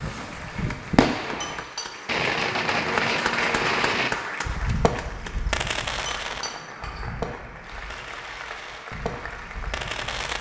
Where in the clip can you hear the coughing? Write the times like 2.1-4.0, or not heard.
not heard.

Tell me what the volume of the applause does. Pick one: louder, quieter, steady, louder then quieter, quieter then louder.
louder then quieter.